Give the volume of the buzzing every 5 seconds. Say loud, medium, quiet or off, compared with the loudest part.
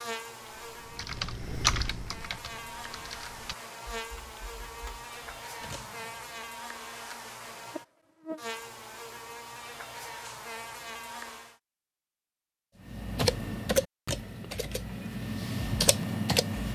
loud, loud, loud, off.